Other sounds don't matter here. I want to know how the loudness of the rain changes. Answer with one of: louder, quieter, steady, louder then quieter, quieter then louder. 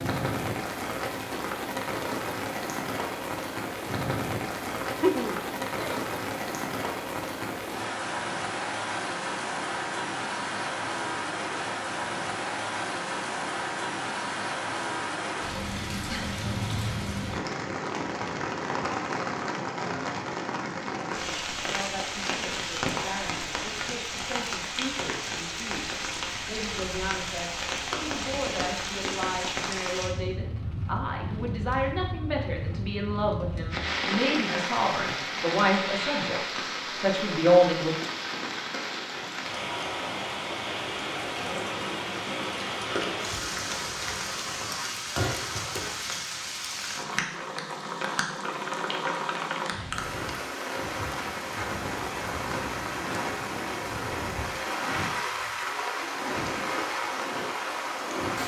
steady.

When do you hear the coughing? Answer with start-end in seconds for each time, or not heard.
4.8-6.0.